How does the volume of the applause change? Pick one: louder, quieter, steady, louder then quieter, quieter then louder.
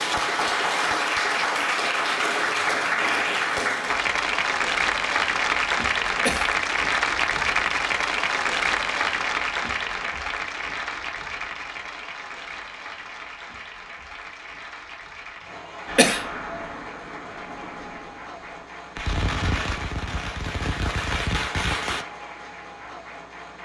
quieter.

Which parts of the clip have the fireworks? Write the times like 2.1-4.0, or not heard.
15.8-22.1.